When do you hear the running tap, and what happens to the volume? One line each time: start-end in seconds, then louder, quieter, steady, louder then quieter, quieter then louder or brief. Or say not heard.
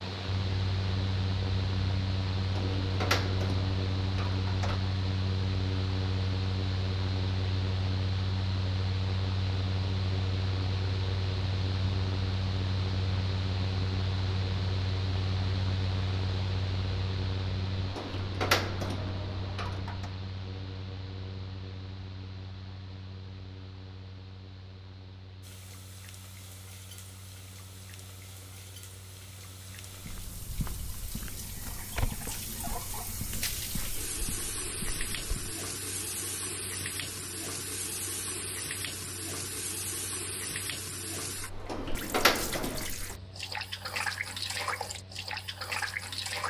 25.4-46.4 louder.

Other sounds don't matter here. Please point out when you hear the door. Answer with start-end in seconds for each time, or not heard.
2.4-4.8, 17.8-20.1, 41.5-42.9.